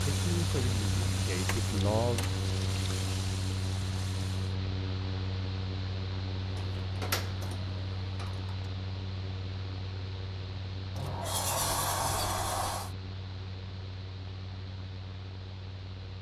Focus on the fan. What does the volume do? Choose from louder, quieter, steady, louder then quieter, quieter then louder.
quieter.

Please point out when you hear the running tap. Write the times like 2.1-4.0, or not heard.
0.0-4.5.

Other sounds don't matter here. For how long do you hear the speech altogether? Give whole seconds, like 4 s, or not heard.
2 s.